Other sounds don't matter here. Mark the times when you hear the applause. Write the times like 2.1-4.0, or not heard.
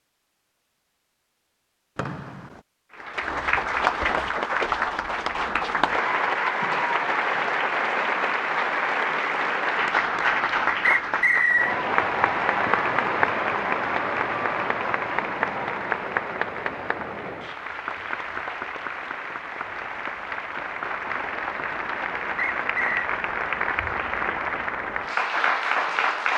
2.9-26.3.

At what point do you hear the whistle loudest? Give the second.
11 s.